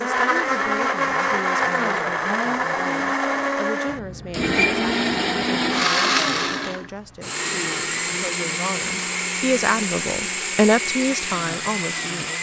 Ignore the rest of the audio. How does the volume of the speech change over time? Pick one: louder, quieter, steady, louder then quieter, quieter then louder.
louder.